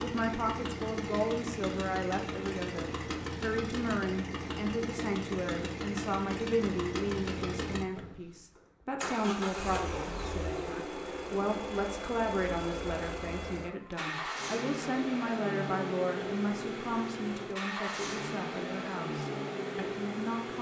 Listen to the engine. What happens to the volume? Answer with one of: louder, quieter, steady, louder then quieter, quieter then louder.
steady.